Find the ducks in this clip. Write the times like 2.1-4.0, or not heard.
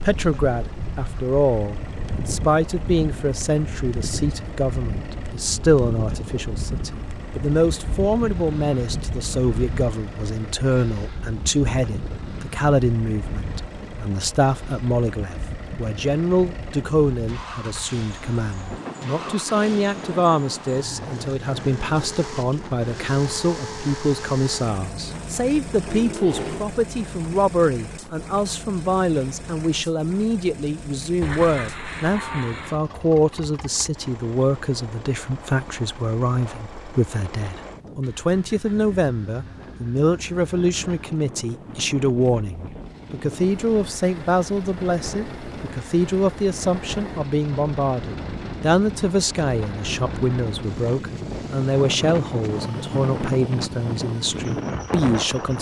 31.2-32.8.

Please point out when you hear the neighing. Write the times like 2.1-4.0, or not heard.
25.8-26.7.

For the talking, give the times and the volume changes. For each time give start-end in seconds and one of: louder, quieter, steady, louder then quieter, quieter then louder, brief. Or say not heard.
0.0-55.5 steady.